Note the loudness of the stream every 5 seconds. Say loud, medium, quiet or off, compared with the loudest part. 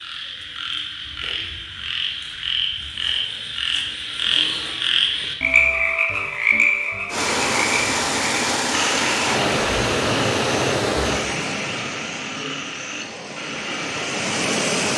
off, loud, loud.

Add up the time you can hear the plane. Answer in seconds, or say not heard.
not heard.